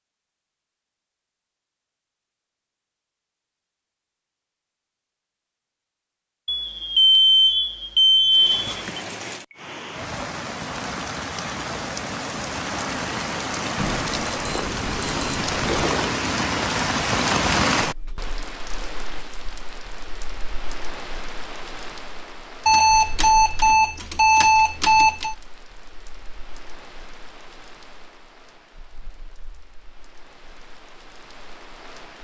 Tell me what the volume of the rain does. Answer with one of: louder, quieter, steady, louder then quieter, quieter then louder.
louder then quieter.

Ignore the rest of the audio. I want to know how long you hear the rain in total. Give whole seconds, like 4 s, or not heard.
24 s.